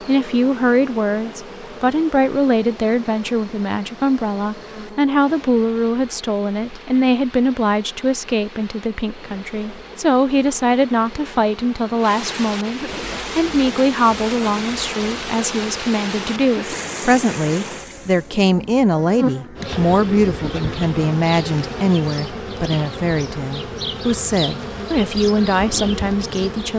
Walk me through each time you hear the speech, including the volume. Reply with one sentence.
You can hear the speech from 0.1 to 26.7 s, at a steady volume.